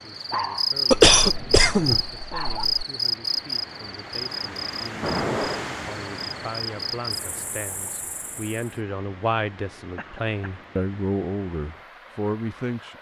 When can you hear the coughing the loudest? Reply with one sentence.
The volume of the coughing peaks at 1 second.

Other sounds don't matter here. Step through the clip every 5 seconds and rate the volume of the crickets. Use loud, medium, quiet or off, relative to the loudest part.
loud, medium, off.